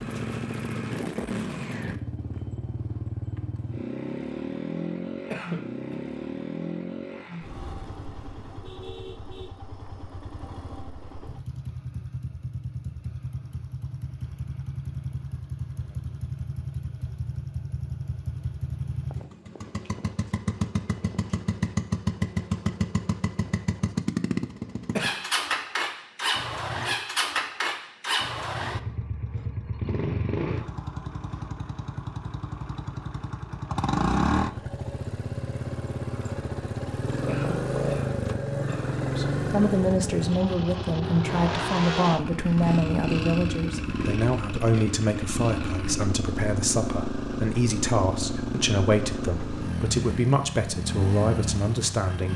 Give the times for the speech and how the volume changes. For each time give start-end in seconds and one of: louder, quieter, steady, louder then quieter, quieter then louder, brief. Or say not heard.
39.1-52.3 steady.